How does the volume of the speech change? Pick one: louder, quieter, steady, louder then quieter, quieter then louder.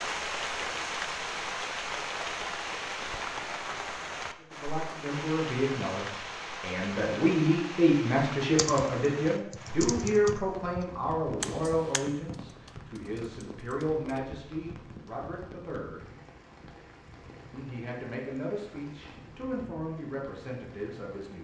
quieter.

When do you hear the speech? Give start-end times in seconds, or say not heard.
4.5-16.1, 17.5-21.4.